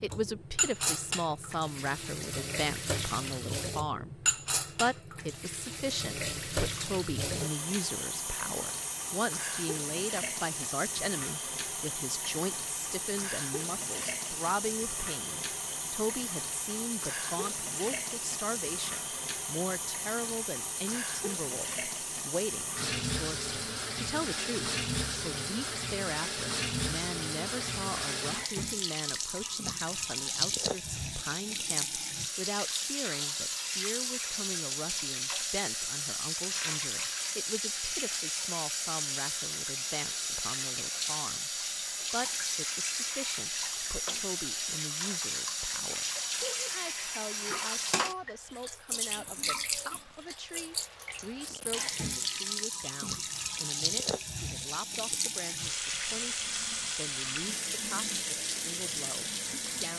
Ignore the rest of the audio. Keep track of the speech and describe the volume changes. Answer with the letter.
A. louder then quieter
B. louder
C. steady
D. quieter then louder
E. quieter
E.